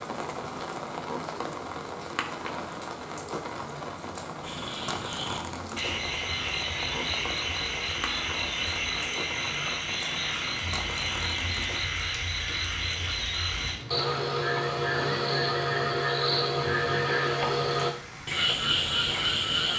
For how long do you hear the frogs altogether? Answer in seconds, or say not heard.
15 s.